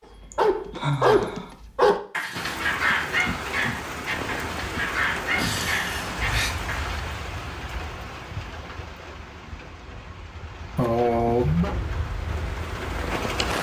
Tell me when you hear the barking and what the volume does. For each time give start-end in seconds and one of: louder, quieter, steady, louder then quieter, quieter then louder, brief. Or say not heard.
0.1-7.0 quieter.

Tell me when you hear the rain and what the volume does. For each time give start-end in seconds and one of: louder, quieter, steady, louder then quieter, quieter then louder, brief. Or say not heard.
2.4-13.5 quieter then louder.